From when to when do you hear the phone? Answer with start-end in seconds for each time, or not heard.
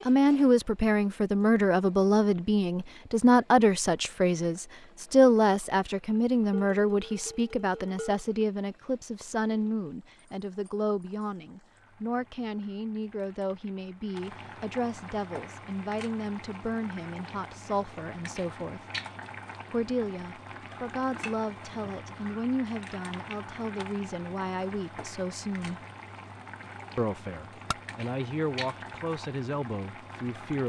not heard.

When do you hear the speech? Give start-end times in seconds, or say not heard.
0.1-18.8, 19.7-25.8, 26.9-30.6.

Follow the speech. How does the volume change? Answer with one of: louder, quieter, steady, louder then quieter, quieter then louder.
quieter.